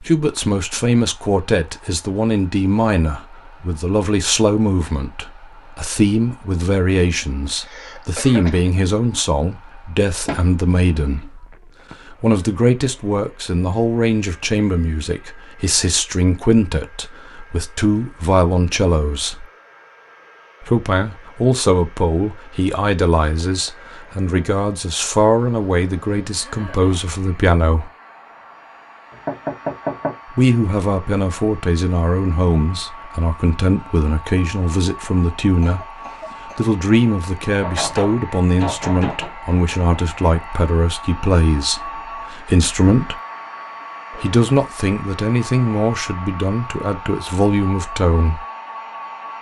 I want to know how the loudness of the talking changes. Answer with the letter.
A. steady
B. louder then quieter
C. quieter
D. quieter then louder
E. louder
A.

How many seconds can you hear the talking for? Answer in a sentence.
The talking can be heard for 43 seconds in total.